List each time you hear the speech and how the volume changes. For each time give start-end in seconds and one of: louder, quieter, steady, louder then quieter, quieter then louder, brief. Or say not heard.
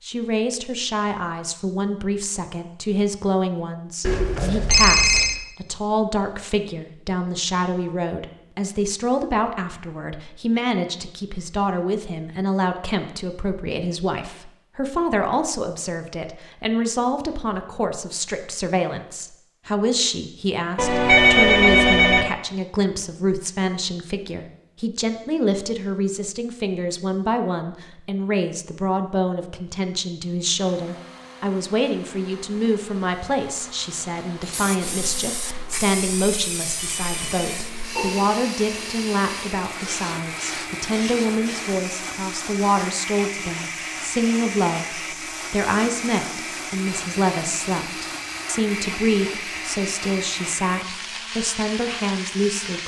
0.0-52.8 steady.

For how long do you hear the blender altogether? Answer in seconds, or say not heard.
22 s.